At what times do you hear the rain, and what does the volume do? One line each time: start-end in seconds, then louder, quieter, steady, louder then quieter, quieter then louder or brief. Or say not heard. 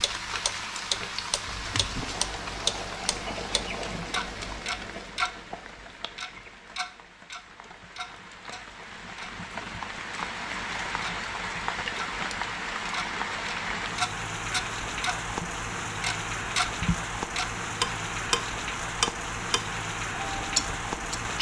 0.0-21.3 quieter then louder.